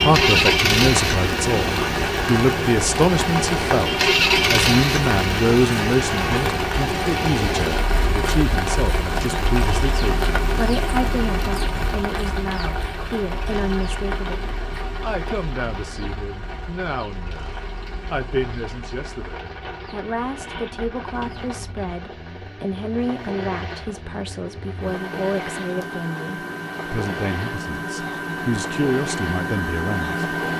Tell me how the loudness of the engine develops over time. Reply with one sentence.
The volume of the engine goes down, then up.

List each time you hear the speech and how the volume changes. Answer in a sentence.
The speech can be heard from 0.0 to 30.2 s, getting quieter.